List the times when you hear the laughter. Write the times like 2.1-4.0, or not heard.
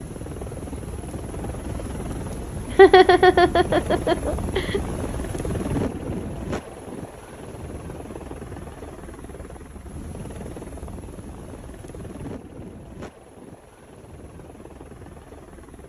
2.7-4.8.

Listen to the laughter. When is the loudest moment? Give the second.
3 s.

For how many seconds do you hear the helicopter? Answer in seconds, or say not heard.
16 s.